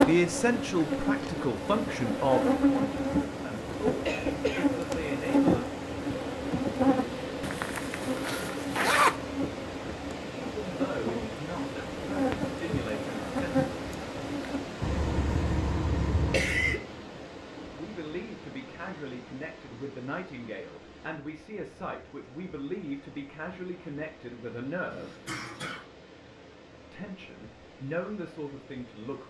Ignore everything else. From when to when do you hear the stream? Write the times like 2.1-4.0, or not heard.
0.0-29.2.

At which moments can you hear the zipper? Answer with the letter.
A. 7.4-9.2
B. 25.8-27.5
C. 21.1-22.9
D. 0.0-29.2
A.